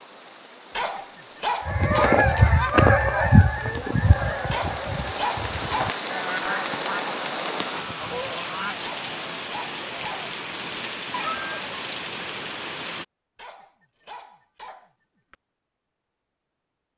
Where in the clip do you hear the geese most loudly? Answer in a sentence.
The loudest moment of the geese is at 3 seconds.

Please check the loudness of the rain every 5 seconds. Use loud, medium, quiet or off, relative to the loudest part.
medium, loud, loud, off.